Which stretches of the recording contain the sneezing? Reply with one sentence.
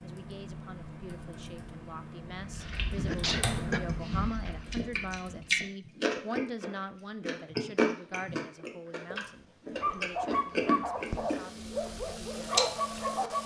The sneezing can be heard from 2.6 to 3.8 s.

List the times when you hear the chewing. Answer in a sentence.
The chewing can be heard from 2.2 to 11.8 s and from 12.5 to 13.0 s.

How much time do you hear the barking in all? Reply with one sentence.
The barking can be heard for 4 seconds in total.